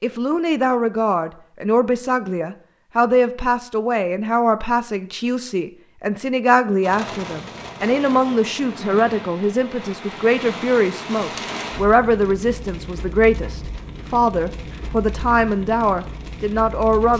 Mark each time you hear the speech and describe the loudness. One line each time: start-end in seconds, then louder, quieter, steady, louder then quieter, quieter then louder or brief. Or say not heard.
0.0-17.1 steady.